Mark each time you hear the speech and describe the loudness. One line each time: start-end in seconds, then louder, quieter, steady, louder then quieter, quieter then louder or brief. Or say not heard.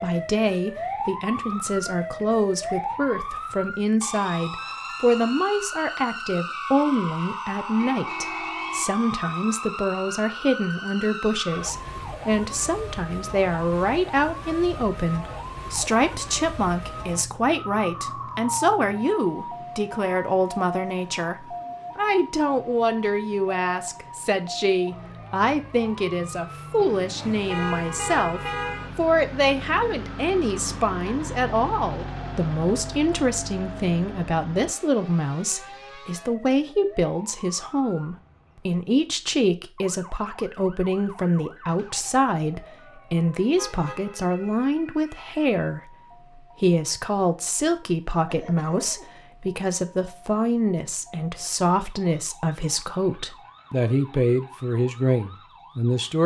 0.0-56.2 steady.